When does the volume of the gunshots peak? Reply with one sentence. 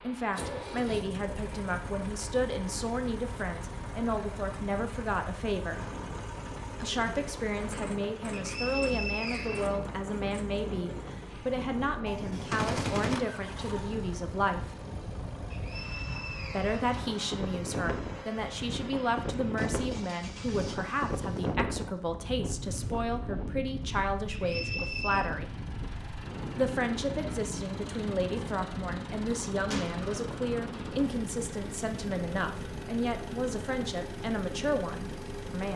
The volume of the gunshots peaks at 13 seconds.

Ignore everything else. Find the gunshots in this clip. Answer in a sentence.
The gunshots can be heard from 12.1 to 13.2 s and from 29.7 to 30.1 s.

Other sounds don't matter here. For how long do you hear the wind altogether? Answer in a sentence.
The wind can be heard for 36 seconds in total.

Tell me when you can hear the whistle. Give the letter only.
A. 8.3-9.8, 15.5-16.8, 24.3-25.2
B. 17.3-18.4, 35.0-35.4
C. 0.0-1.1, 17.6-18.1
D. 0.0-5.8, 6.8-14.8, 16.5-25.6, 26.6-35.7
A.